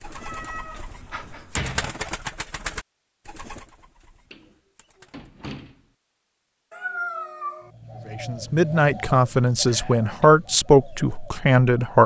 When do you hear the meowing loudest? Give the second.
7 s.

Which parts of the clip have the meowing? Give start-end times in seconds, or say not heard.
0.0-1.6, 6.7-7.7.